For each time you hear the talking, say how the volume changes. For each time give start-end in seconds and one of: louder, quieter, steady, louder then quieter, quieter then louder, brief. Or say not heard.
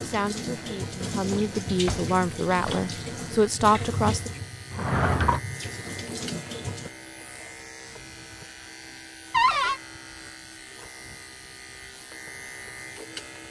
0.0-4.3 louder.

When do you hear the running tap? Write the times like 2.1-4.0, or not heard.
0.0-6.9.